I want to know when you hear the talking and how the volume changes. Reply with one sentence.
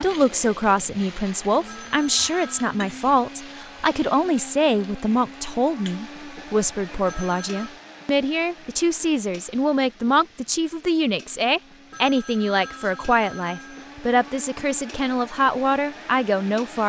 You can hear the talking from 0.0 to 16.8 s, at a steady volume.